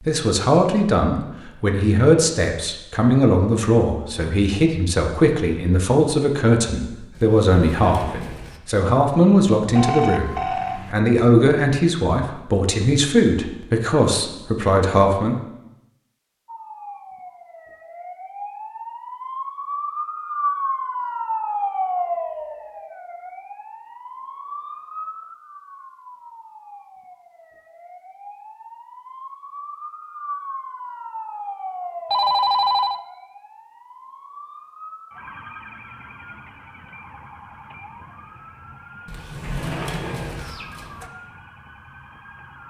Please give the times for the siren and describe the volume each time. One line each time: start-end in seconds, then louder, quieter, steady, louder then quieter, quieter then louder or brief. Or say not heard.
16.4-42.6 quieter.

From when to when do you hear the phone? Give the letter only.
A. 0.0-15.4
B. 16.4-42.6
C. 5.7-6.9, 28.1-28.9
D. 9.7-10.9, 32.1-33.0
D.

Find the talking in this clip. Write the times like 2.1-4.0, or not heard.
0.0-15.4.